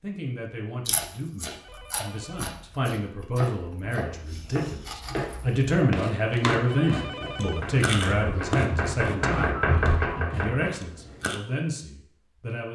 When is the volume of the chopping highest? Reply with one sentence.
The loudest moment of the chopping is at 10 seconds.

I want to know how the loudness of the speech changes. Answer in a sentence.
The volume of the speech goes up, then down.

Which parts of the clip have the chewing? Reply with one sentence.
You can hear the chewing from 0.8 to 11.4 s.